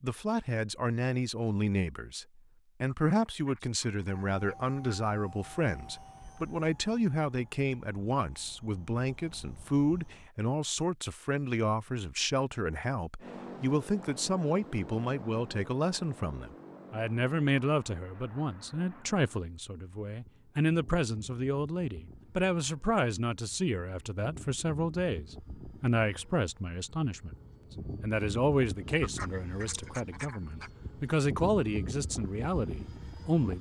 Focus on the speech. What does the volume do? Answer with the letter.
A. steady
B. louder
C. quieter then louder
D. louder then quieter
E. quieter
A.